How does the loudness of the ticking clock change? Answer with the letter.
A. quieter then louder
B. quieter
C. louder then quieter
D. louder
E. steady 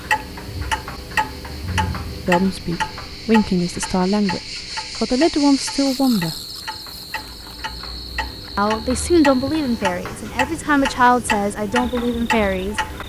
A.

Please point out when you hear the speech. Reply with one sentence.
The speech can be heard from 2.2 to 6.3 s and from 8.6 to 13.0 s.